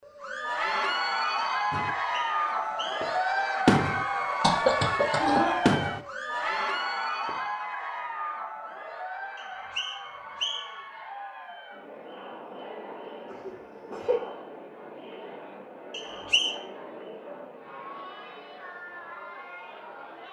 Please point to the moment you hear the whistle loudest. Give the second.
16 s.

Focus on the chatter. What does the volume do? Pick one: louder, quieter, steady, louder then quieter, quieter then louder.
quieter.